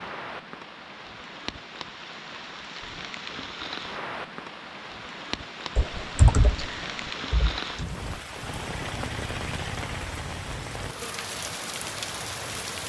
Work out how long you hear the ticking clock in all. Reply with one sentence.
You can't hear the ticking clock here.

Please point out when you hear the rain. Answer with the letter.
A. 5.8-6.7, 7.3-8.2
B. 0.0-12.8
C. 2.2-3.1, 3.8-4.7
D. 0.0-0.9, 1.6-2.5
B.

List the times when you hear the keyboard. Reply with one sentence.
The keyboard can be heard from 5.8 to 6.7 s and from 7.3 to 8.2 s.